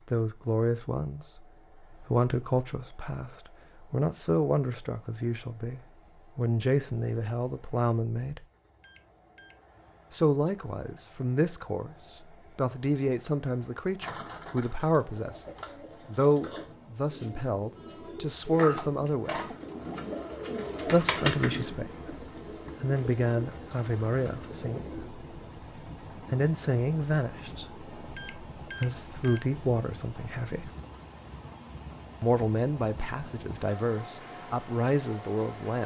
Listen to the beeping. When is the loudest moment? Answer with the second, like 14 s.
29 s.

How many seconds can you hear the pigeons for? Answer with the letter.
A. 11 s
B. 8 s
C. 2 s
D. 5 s
A.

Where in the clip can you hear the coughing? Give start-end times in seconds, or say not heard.
18.5-19.6.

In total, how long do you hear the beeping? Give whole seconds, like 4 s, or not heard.
2 s.